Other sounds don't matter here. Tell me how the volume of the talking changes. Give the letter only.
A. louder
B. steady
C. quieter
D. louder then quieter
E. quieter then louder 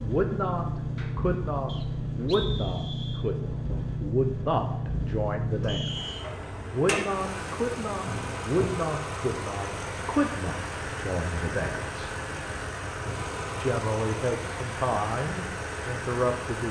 B.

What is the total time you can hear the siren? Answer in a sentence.
The siren can't be heard in this clip.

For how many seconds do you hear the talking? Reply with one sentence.
The talking can be heard for 15 seconds in total.